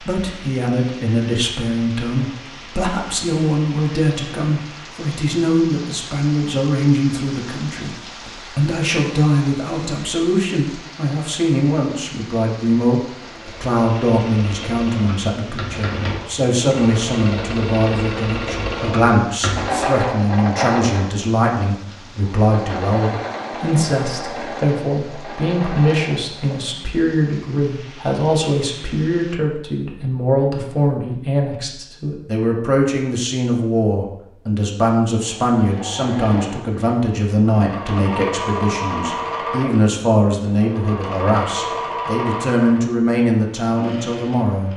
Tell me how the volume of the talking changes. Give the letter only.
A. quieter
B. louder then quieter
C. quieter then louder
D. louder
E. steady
E.